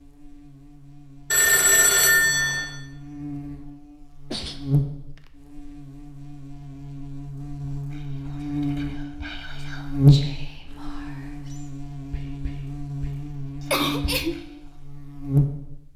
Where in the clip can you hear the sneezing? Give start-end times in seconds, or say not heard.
4.3-5.2, 13.7-14.4.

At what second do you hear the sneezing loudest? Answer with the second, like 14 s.
14 s.